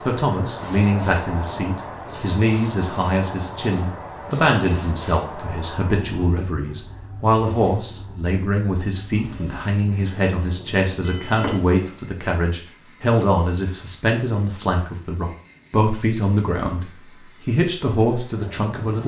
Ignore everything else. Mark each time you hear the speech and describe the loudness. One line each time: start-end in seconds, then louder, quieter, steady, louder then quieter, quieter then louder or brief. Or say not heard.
0.0-19.0 steady.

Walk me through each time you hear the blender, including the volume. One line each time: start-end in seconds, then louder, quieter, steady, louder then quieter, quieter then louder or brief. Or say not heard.
not heard.